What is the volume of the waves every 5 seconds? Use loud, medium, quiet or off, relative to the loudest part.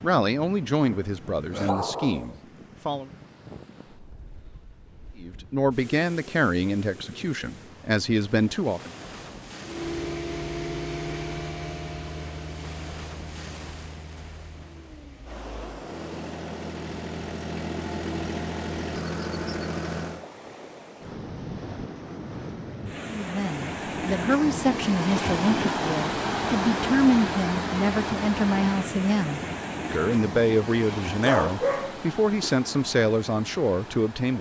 quiet, quiet, quiet, quiet, medium, loud, medium.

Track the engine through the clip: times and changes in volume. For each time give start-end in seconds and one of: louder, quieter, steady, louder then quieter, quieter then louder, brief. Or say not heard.
9.6-20.2 quieter then louder.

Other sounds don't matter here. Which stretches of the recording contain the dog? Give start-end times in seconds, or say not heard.
0.8-2.4, 31.2-32.5.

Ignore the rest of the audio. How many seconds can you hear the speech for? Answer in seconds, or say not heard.
18 s.